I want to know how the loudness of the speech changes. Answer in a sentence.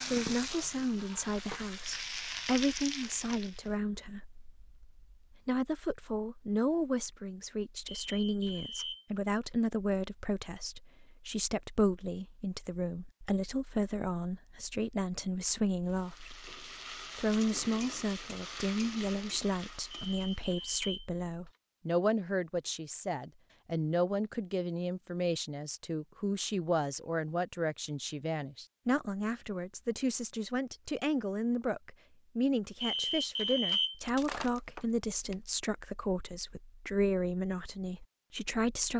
The loudness of the speech stays about the same.